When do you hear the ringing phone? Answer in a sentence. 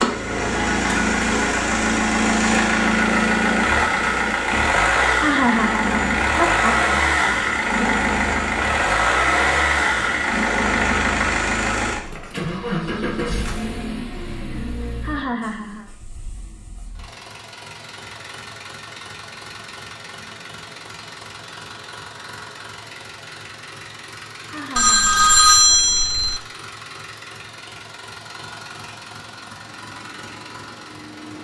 You can hear the ringing phone from 24.8 to 26.4 s.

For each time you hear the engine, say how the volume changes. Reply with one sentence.
The engine can be heard from 0.0 to 31.3 s, getting quieter.